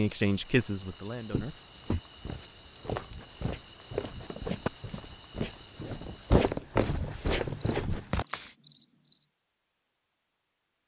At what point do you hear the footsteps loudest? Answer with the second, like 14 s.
6 s.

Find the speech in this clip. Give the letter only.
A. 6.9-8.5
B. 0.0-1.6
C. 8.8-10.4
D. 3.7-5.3
B.